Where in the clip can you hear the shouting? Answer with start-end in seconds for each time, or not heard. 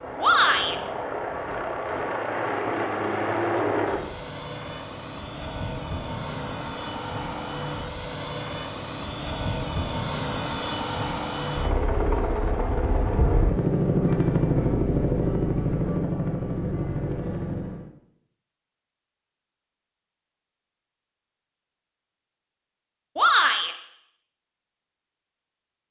0.2-0.8, 23.1-23.8.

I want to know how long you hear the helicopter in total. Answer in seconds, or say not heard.
18 s.